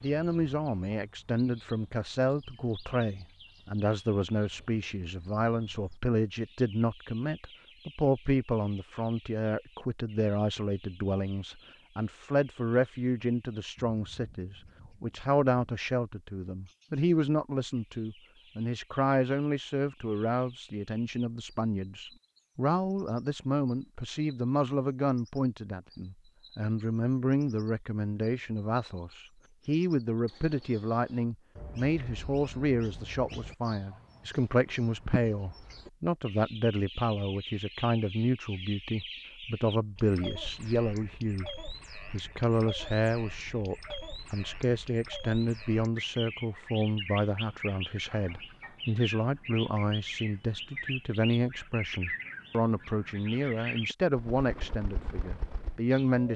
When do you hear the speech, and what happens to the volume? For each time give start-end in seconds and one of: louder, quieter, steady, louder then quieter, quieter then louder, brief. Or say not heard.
0.0-41.5 steady
42.1-56.3 steady.